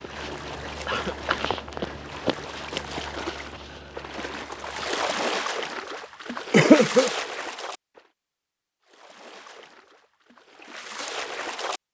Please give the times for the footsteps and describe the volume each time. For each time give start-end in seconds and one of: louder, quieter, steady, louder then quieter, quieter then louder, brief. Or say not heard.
0.0-5.3 louder then quieter.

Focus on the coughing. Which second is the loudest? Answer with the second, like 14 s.
7 s.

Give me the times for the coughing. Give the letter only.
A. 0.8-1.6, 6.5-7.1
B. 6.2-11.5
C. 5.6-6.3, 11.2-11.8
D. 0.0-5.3
A.